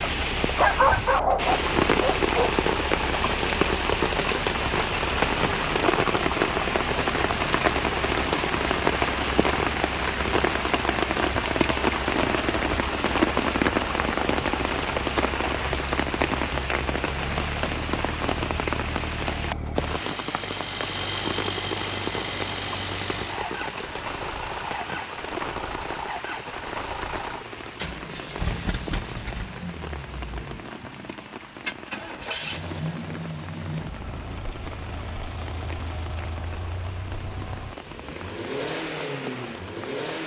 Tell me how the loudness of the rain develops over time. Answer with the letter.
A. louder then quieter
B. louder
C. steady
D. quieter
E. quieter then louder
D.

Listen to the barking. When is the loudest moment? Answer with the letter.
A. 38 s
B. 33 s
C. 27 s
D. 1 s
D.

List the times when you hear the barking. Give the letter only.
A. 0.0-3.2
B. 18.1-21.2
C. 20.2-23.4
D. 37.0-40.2
A.